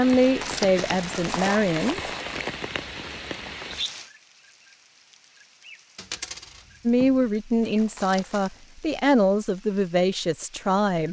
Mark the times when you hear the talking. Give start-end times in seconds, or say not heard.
0.0-2.0, 6.8-11.0.